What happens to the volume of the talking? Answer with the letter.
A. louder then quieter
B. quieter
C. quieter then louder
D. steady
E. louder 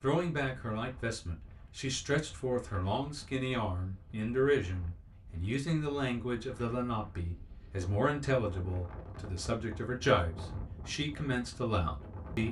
D.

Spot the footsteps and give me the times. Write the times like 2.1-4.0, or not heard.
not heard.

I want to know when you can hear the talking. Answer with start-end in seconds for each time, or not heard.
0.0-12.4.